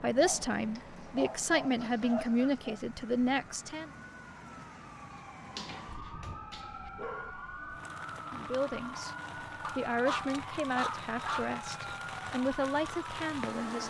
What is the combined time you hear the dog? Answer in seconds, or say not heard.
6 s.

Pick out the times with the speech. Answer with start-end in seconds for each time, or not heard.
0.0-3.9, 8.3-13.8.